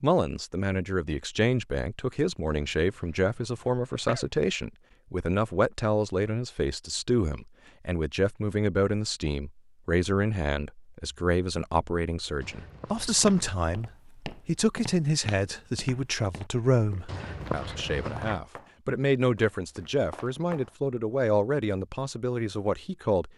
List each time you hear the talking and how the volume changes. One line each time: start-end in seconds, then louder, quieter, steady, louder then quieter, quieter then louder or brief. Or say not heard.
0.0-23.3 steady.